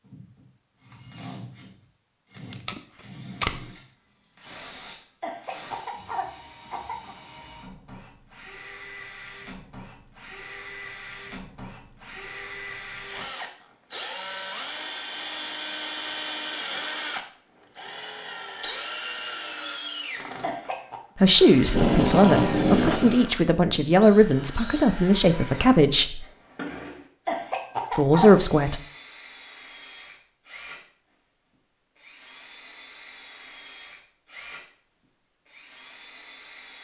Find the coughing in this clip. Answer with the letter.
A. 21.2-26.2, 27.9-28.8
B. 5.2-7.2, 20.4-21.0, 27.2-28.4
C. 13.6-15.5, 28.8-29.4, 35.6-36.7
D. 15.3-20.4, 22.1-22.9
B.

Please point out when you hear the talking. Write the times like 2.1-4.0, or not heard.
21.2-26.2, 27.9-28.8.